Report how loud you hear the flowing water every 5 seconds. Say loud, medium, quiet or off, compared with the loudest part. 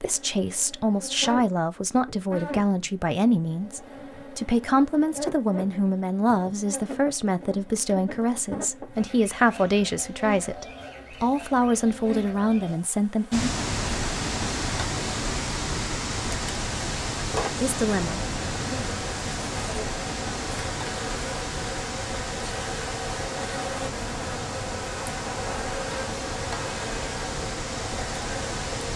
off, off, loud, loud, medium, medium.